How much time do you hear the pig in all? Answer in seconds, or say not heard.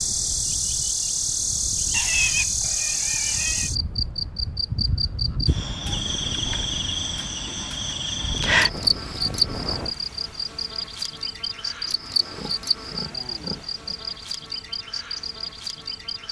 4 s.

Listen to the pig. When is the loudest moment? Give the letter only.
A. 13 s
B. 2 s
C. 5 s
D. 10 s
B.